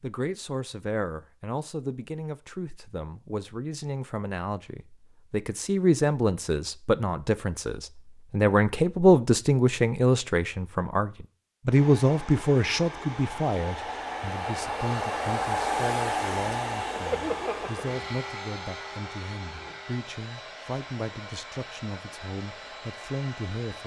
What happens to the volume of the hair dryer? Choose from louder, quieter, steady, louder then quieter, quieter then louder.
louder then quieter.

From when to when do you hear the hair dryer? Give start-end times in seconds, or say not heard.
11.7-23.8.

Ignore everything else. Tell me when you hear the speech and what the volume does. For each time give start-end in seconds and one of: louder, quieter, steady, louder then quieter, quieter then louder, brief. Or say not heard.
0.0-23.8 louder then quieter.